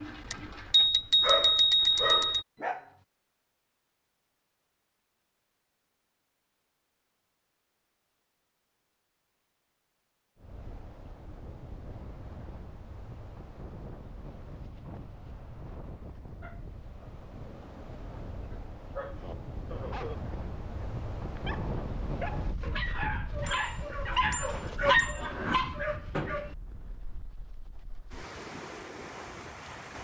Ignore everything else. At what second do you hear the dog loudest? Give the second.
25 s.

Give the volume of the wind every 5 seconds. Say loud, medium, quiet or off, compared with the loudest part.
off, off, medium, medium, loud, medium.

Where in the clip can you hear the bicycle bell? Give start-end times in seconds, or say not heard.
0.3-2.5, 23.4-25.2.